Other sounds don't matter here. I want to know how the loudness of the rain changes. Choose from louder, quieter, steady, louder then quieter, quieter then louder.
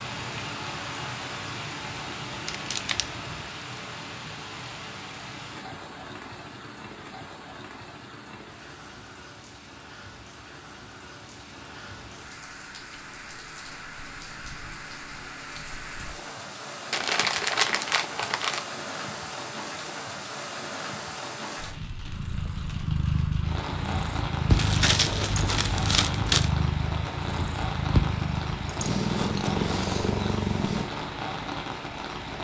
quieter then louder.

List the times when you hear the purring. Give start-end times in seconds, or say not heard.
22.1-30.9.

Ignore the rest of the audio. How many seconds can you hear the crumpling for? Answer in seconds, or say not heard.
4 s.